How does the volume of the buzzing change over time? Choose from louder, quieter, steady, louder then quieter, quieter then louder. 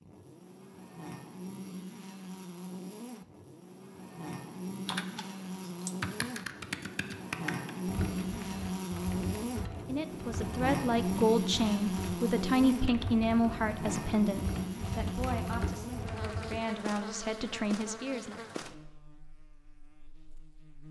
louder then quieter.